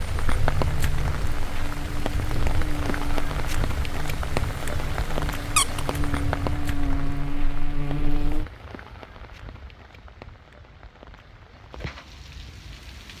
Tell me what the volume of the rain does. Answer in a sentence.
The volume of the rain goes down.